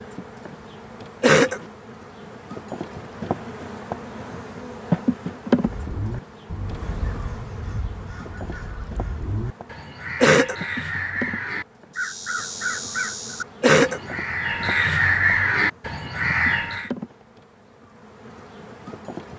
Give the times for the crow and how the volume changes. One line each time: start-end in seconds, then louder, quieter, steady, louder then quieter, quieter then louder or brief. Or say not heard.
5.6-16.9 louder.